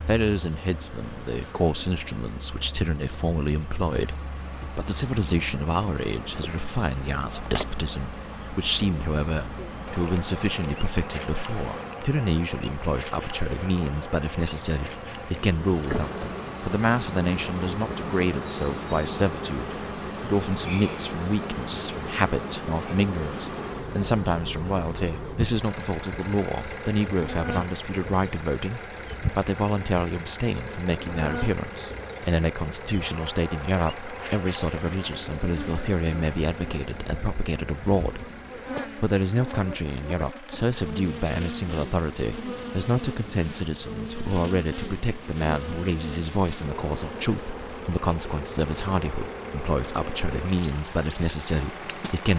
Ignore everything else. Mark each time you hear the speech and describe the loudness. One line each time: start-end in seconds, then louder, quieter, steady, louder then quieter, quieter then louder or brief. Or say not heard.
0.0-38.3 steady
39.0-52.3 steady.